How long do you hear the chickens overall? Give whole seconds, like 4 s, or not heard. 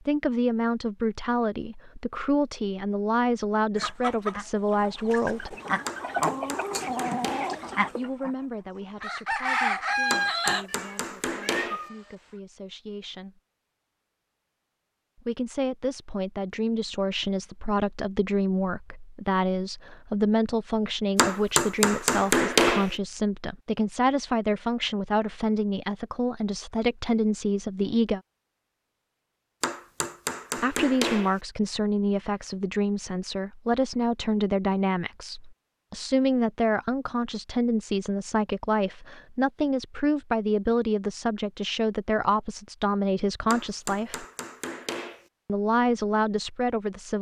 7 s.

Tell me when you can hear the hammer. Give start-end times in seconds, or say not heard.
5.8-7.6, 10.1-11.8, 21.1-22.9, 29.6-31.4, 43.5-45.2.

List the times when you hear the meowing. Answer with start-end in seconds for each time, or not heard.
10.7-12.2.